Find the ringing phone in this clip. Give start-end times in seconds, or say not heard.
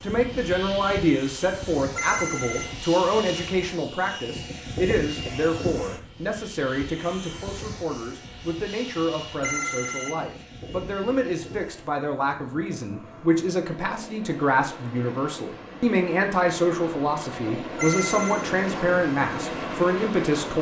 1.9-2.8, 9.4-10.2, 17.8-18.5.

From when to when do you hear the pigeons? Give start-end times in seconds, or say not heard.
not heard.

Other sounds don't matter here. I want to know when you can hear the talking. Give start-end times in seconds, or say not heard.
0.0-20.5.